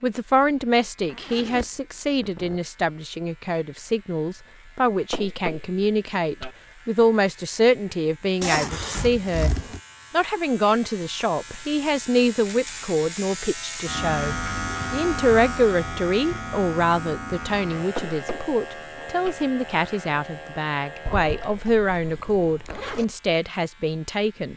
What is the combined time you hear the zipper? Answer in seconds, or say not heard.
5 s.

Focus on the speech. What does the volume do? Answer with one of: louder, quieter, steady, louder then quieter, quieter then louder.
steady.